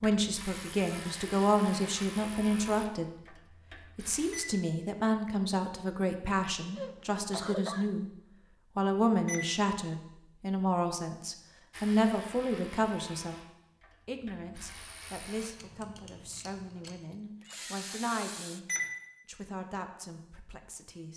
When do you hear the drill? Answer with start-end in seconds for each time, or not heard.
16.9-18.6.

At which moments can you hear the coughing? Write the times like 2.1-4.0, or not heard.
6.8-7.9.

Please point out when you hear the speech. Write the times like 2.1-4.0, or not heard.
0.0-3.1, 4.0-8.1, 8.8-13.4, 14.1-18.6, 19.2-21.1.